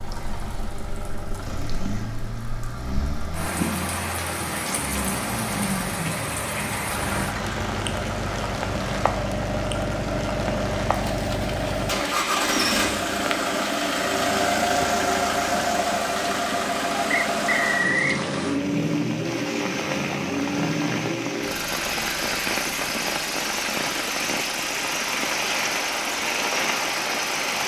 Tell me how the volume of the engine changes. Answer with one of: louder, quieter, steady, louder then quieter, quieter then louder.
louder then quieter.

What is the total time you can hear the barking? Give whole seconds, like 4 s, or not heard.
not heard.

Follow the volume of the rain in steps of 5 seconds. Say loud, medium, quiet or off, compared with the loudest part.
medium, medium, medium, medium, loud, loud.